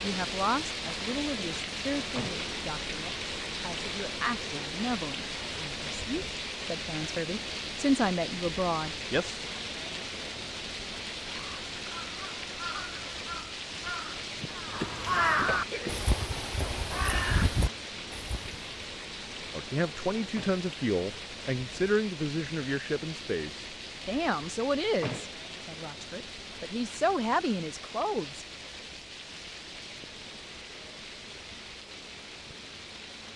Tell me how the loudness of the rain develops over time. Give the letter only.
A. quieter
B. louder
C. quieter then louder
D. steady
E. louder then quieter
A.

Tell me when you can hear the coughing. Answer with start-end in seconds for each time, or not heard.
14.4-16.1.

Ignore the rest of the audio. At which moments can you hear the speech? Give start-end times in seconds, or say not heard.
0.0-9.4, 19.6-28.4.